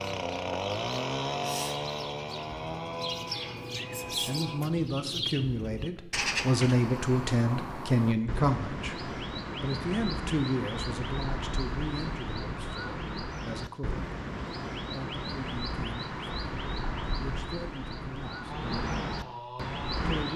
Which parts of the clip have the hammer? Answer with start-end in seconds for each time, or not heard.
not heard.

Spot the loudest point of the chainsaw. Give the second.
1 s.